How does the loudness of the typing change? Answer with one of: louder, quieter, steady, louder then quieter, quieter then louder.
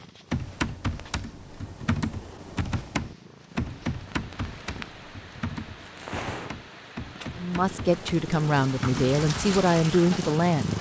quieter.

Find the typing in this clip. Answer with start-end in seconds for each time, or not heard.
0.3-9.2.